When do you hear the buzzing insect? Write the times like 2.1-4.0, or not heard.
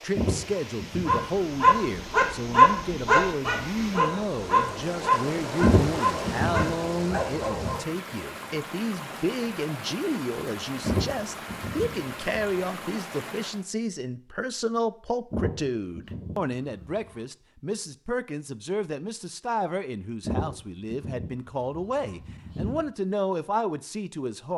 not heard.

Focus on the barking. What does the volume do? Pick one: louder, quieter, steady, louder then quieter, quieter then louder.
quieter.